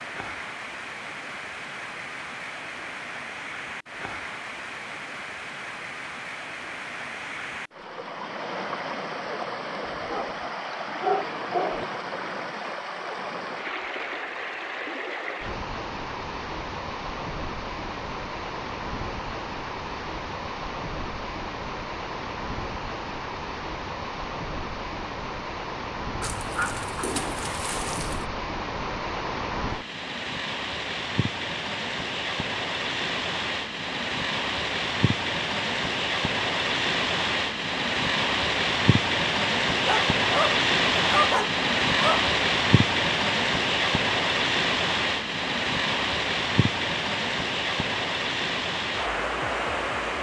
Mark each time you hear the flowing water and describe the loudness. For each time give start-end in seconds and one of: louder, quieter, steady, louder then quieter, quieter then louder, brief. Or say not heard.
0.0-50.1 louder.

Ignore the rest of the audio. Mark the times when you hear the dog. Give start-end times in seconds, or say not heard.
9.9-11.8, 26.2-28.2, 39.7-42.2.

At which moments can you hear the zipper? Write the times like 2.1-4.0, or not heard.
not heard.